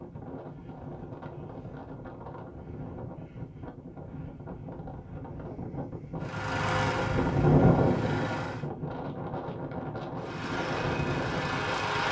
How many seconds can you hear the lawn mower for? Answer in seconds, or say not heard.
4 s.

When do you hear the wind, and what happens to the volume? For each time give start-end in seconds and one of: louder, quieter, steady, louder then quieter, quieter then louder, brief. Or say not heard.
0.0-12.0 louder then quieter.